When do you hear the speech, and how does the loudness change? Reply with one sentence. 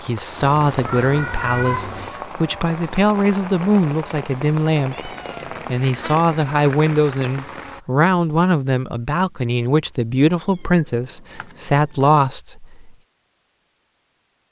The speech can be heard from 0.0 to 12.9 s, at a steady volume.